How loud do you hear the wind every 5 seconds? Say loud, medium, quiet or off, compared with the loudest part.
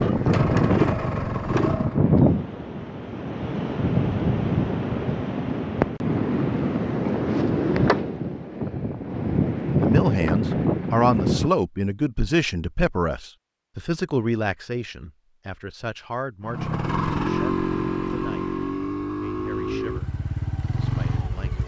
loud, loud, loud, off, off.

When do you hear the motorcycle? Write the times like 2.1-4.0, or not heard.
0.0-2.0, 16.4-21.6.